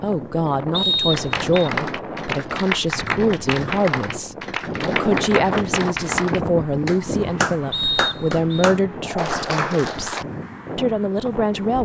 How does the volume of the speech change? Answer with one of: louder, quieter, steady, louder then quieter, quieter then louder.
steady.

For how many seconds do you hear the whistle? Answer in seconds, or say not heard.
2 s.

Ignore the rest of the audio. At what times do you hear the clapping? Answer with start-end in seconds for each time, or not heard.
1.1-10.2.